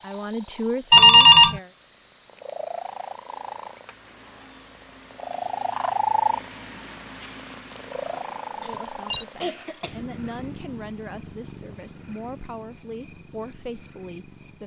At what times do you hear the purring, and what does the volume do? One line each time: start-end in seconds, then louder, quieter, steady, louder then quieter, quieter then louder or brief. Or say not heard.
0.0-14.6 louder then quieter.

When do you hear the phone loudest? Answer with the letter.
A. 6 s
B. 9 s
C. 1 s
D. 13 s
C.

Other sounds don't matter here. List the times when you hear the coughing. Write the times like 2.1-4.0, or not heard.
8.7-10.1.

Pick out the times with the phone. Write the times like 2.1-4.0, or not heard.
0.9-1.6, 8.1-9.2.